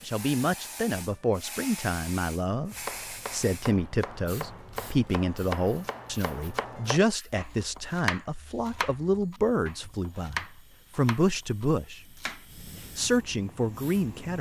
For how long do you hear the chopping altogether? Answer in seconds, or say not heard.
10 s.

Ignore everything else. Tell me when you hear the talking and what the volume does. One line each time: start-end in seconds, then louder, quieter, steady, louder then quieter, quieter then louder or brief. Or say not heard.
0.0-12.1 steady
12.9-14.3 brief.